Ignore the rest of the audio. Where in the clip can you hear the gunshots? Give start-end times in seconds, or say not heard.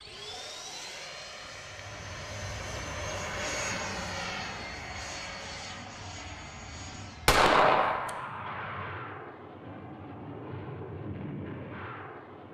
7.2-8.2.